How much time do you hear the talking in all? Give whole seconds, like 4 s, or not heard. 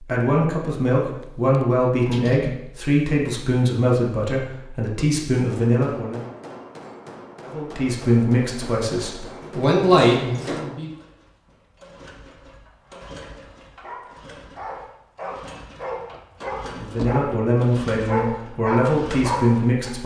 13 s.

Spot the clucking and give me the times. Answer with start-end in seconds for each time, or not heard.
not heard.